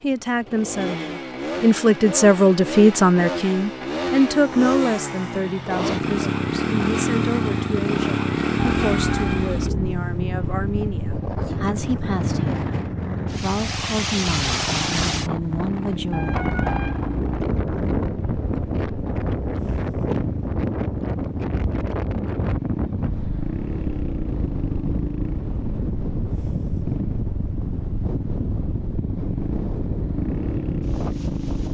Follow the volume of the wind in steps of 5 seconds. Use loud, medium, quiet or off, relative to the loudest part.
off, off, loud, loud, loud, loud, loud.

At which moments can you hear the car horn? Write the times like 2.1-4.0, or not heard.
8.6-9.9, 16.1-17.4.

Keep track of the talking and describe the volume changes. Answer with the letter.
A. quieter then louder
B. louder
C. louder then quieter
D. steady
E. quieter
E.